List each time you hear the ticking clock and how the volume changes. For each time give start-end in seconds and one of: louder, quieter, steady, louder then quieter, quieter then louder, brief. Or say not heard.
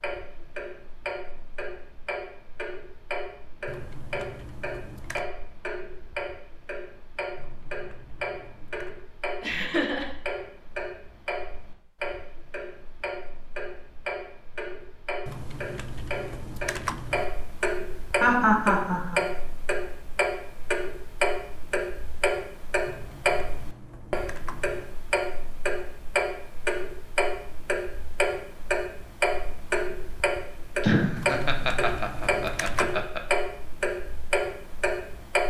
0.0-35.4 louder.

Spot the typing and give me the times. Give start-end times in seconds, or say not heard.
3.6-5.3, 7.3-9.0, 15.2-17.2, 22.9-24.9, 31.1-33.0.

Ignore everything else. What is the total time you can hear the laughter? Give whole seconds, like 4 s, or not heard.
4 s.